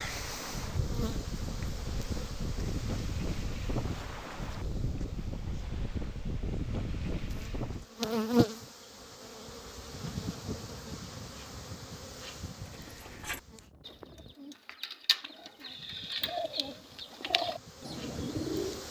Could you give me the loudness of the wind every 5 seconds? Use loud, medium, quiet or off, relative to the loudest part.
loud, loud, quiet, off.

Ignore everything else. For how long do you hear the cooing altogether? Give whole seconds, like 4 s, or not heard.
6 s.